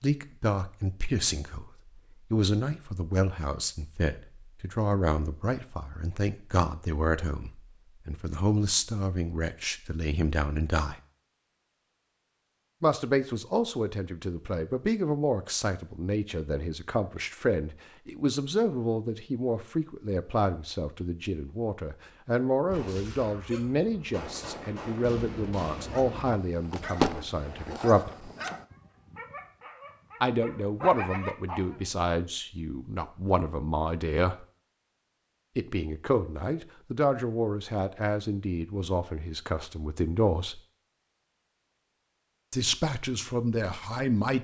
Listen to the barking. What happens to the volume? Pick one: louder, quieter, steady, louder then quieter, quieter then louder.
quieter then louder.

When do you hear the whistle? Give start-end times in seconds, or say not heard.
not heard.